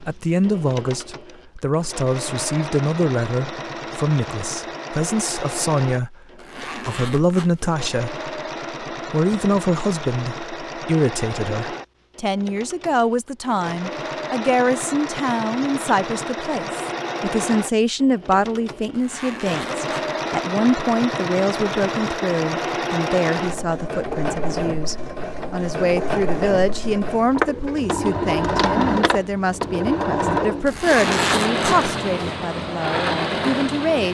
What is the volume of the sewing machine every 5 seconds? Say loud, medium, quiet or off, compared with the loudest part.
medium, medium, medium, medium, loud, loud, loud.